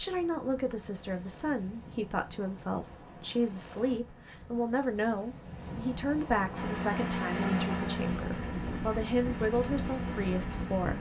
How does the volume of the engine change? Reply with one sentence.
The volume of the engine goes down.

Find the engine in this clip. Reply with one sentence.
The engine can be heard from 6.5 to 10.9 s.